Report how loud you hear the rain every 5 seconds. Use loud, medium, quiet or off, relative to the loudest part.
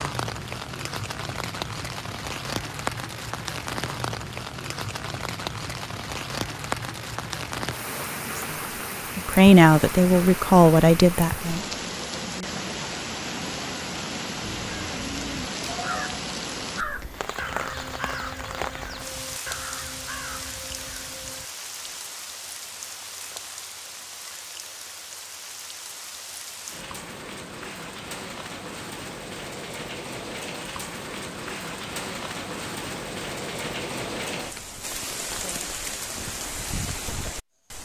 loud, loud, loud, loud, medium, medium, loud, loud.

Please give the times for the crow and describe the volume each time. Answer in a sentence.
The crow can be heard from 14.4 to 22.0 s, getting quieter.